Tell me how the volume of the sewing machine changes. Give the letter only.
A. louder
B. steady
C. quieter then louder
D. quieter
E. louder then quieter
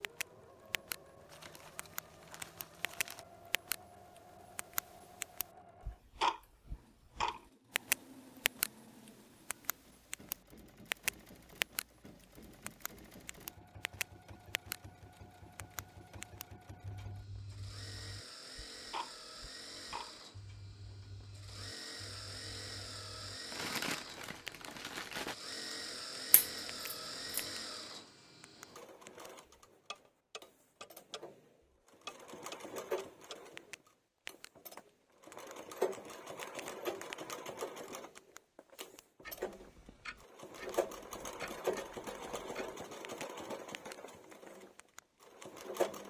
A.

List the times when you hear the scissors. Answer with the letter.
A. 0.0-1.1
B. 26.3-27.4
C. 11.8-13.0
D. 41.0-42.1
B.